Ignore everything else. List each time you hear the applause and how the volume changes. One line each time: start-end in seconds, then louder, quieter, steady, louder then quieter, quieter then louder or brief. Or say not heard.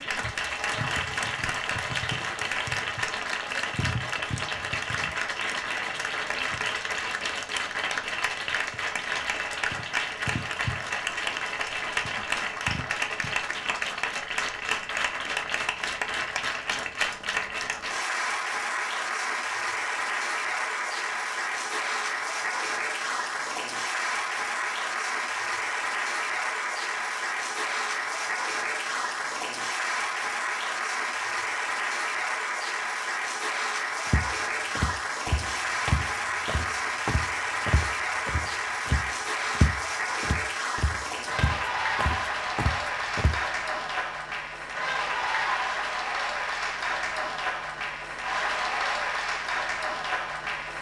0.0-50.7 steady.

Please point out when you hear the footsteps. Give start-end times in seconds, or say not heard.
34.0-43.4.